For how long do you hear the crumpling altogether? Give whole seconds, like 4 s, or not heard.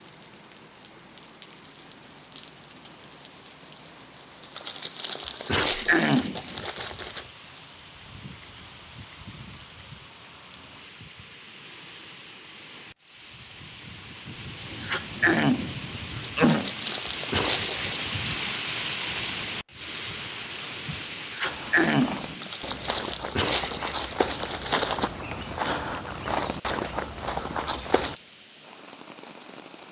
7 s.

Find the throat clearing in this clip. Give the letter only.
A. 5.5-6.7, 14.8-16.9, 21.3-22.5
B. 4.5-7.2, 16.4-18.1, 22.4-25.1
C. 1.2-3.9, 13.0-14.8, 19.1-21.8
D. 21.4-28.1
A.